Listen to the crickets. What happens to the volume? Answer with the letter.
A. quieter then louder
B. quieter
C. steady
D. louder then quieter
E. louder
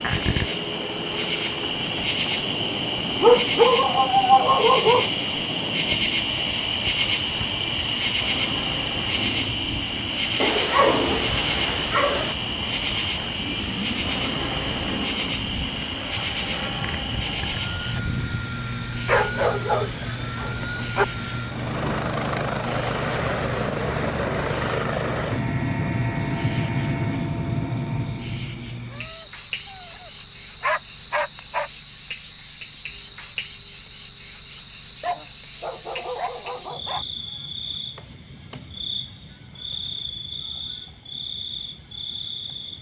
B.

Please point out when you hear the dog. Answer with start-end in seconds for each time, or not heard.
3.2-5.1, 10.4-12.3, 19.1-21.1, 28.9-31.7, 35.0-37.0.